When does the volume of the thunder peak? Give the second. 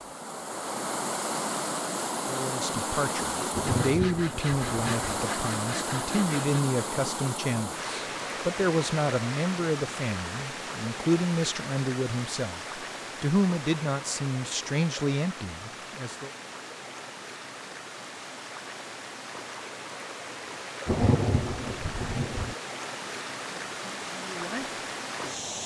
21 s.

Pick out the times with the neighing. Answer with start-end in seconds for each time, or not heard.
not heard.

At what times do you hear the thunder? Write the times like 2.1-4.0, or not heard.
3.5-5.2, 20.9-22.6.